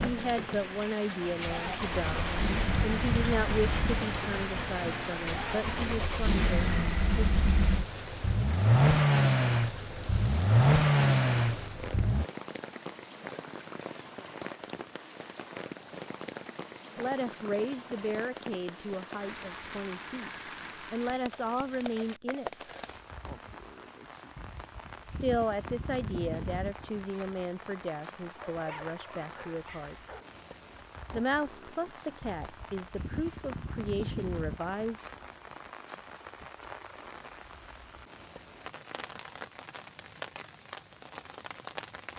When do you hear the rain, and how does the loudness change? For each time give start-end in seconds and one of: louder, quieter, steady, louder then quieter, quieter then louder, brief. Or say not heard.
0.0-42.1 quieter.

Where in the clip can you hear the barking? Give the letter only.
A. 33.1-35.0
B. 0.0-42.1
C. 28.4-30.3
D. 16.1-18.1
C.